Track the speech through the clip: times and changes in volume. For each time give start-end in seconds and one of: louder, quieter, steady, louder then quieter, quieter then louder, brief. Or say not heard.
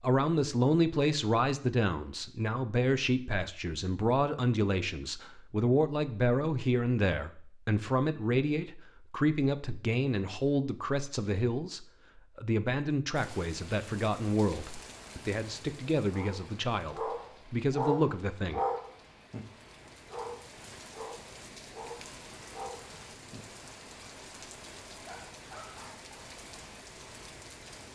0.0-18.6 steady.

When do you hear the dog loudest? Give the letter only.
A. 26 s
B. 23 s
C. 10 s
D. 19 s
D.